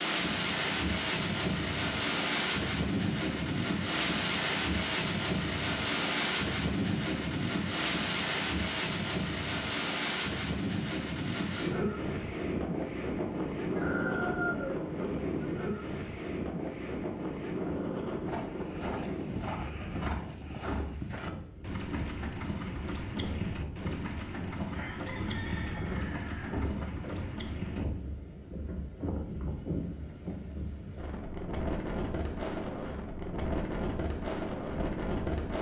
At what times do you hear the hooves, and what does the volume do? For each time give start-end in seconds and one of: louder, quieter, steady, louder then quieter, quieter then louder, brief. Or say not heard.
18.2-27.9 steady.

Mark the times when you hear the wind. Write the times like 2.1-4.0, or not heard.
0.0-35.5.